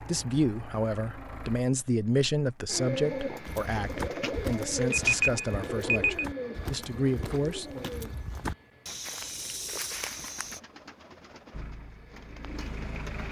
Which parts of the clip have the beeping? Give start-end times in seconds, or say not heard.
4.9-6.2.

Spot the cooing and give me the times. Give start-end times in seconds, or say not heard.
2.6-13.2.